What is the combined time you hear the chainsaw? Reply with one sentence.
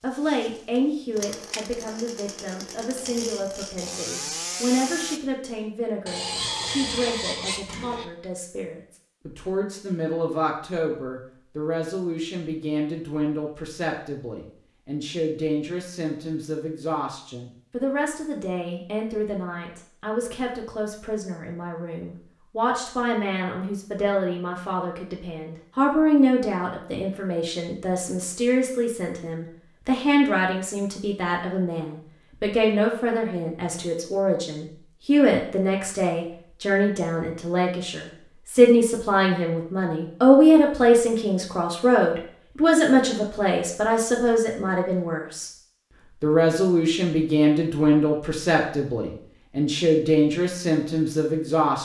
You can hear the chainsaw for 5 seconds altogether.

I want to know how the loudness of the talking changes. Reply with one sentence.
The volume of the talking goes up.